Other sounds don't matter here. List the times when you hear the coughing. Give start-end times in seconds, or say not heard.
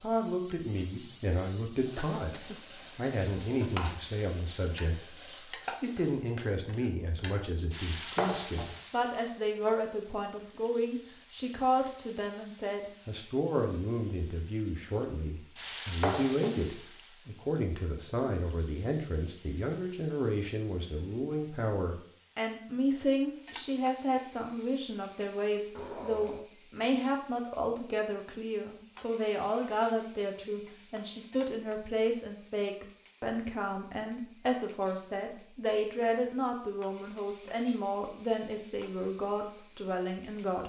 1.9-3.0, 25.8-26.5.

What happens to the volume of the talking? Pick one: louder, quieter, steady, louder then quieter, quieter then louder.
steady.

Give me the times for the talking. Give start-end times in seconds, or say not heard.
0.0-40.6.